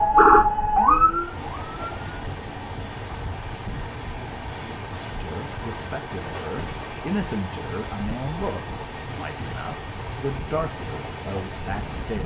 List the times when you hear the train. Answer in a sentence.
The train can be heard from 0.0 to 12.2 s.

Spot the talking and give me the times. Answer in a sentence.
You can hear the talking from 5.2 to 12.2 s.